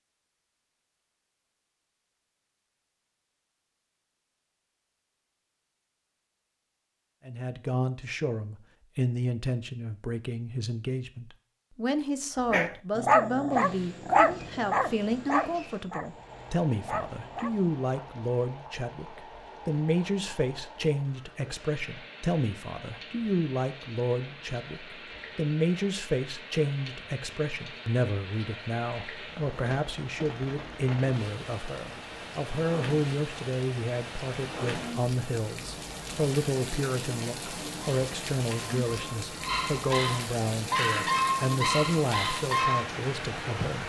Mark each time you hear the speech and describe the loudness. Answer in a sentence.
You can hear the speech from 7.2 to 43.8 s, at a steady volume.